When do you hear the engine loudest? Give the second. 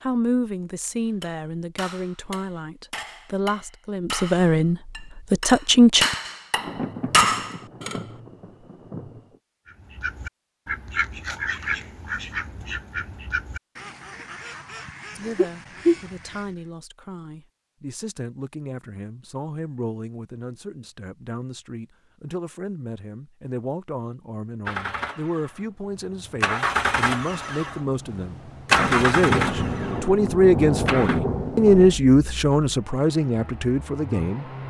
29 s.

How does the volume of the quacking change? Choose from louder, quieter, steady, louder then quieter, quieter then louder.
quieter then louder.